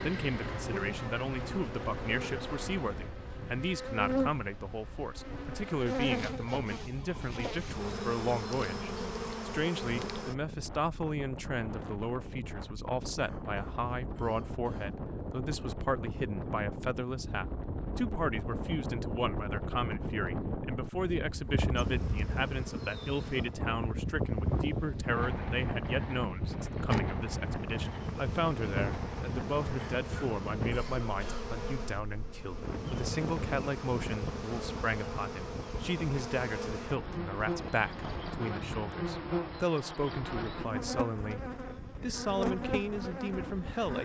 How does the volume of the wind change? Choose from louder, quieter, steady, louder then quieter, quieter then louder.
louder then quieter.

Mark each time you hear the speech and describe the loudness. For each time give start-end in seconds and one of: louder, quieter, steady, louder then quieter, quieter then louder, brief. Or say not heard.
0.0-44.0 steady.